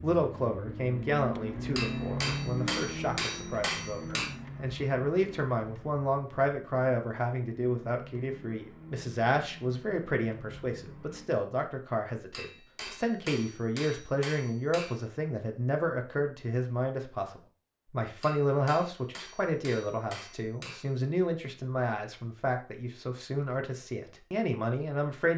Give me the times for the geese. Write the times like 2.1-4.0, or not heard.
not heard.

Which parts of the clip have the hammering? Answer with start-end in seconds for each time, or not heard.
1.8-4.3, 12.3-15.0, 18.2-20.9.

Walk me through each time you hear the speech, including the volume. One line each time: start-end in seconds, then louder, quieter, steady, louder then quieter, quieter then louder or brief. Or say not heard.
0.0-25.3 steady.